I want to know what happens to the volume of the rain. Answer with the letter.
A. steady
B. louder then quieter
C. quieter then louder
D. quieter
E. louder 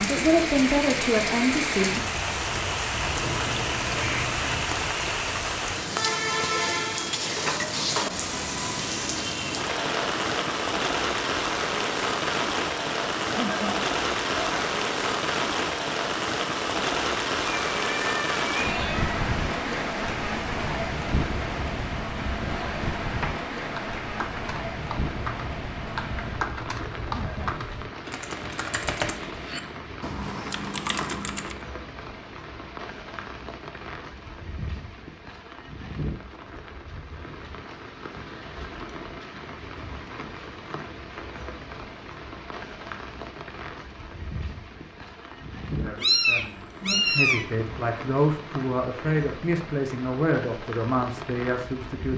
D.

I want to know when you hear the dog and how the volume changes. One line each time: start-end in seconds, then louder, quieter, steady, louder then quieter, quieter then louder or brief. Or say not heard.
not heard.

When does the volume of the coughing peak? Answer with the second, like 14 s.
14 s.